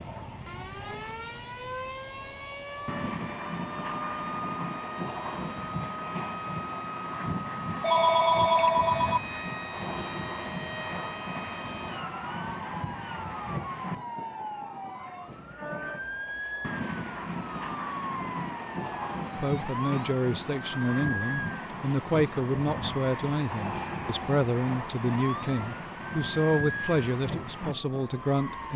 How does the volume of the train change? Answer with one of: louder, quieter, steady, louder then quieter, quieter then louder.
steady.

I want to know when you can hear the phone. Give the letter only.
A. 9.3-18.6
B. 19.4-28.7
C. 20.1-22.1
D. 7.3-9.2
D.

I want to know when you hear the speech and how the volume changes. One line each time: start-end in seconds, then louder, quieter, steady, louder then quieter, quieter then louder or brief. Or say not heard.
19.4-28.7 steady.